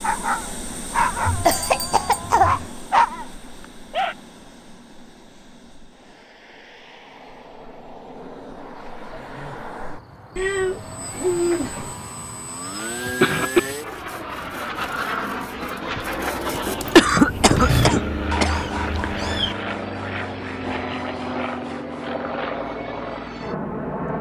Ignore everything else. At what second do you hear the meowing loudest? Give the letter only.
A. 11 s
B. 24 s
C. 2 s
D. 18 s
A.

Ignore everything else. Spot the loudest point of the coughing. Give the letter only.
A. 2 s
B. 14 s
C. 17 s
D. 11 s
C.